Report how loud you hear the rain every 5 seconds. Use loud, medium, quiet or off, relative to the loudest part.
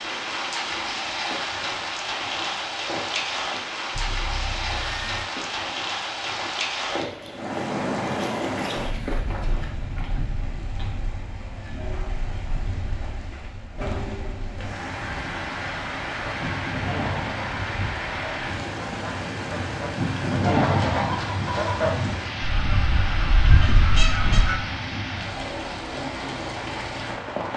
loud, loud, medium, loud, loud, loud.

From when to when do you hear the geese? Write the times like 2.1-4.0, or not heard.
16.2-24.6.